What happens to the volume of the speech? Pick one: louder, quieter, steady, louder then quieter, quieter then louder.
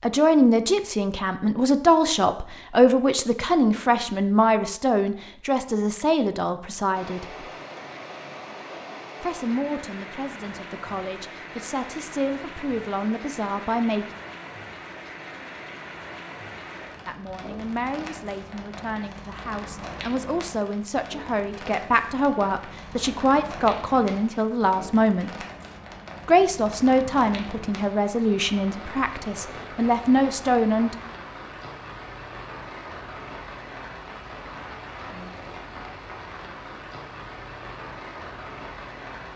quieter then louder.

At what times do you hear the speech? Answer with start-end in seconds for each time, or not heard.
0.0-7.5, 9.2-14.1, 17.1-25.4, 26.2-30.9.